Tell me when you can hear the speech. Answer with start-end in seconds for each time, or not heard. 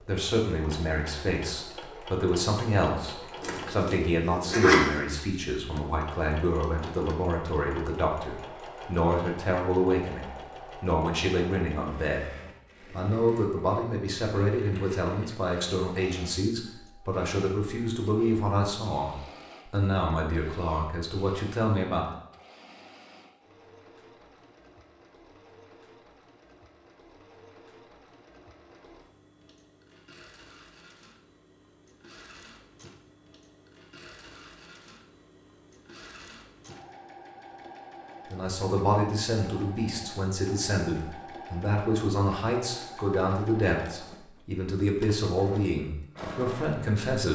0.0-12.3, 12.9-22.1, 38.3-47.3.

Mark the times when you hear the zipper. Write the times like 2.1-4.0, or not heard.
3.4-5.0.